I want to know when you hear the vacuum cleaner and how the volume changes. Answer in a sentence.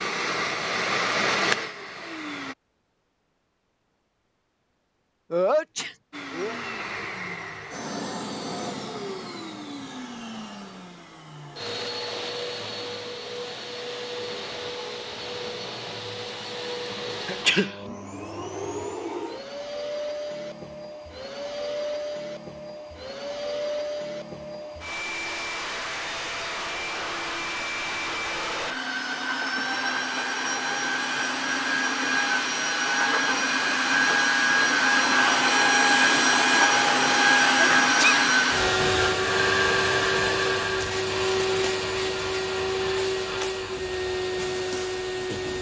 You can hear the vacuum cleaner briefly from 0.0 to 2.5 s; and from 6.1 to 45.5 s, getting louder.